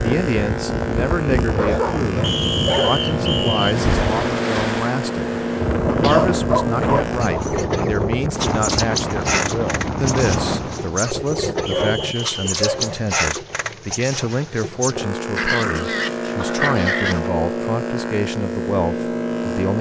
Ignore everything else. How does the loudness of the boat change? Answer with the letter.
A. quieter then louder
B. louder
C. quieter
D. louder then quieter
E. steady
E.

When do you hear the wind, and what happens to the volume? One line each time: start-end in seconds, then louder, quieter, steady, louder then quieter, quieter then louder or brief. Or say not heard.
0.0-11.0 steady.